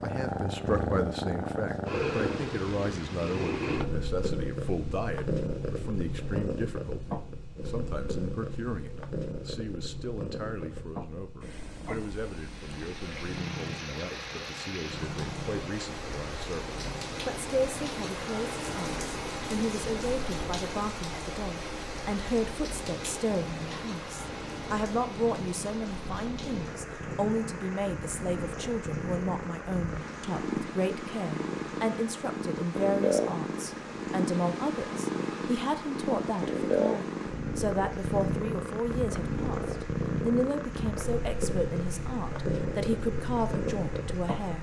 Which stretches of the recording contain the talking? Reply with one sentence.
You can hear the talking from 0.0 to 44.5 s.